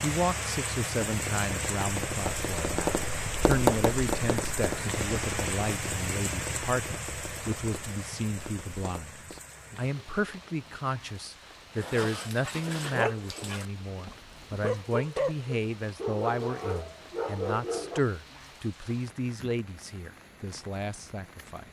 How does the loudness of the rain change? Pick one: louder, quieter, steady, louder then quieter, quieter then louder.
quieter.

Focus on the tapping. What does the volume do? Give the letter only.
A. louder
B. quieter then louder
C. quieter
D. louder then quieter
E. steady
D.